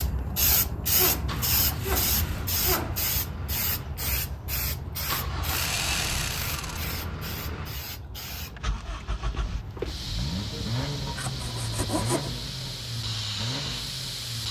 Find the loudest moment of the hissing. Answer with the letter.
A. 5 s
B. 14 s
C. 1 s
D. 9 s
C.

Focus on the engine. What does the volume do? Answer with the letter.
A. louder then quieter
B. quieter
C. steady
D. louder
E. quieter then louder
D.